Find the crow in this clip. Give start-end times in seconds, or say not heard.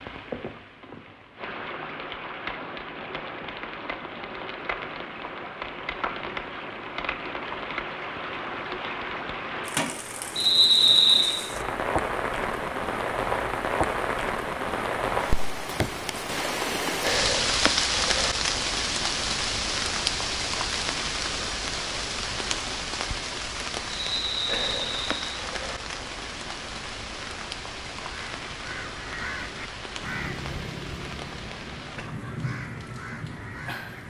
28.0-34.0.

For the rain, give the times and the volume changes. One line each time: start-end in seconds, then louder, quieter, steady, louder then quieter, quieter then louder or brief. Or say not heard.
0.0-34.0 louder then quieter.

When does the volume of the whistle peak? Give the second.
11 s.